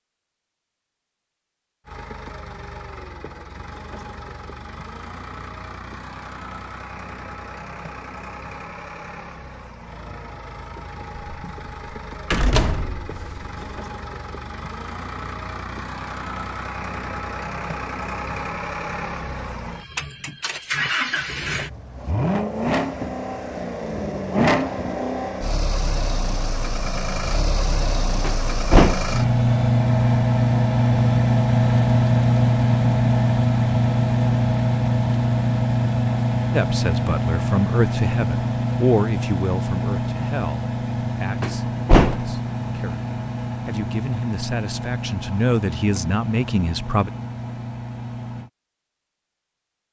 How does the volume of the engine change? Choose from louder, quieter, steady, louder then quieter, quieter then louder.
louder then quieter.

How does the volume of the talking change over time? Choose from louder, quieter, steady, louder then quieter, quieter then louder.
quieter then louder.